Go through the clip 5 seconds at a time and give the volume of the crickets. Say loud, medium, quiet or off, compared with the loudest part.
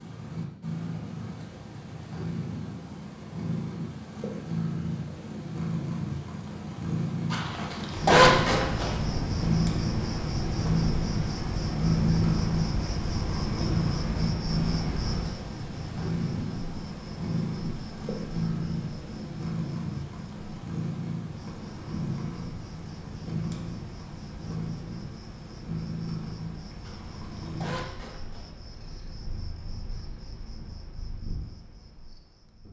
off, loud, loud, medium, quiet, quiet, quiet.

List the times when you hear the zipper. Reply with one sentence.
The zipper can be heard from 7.3 to 8.9 s and from 26.8 to 28.5 s.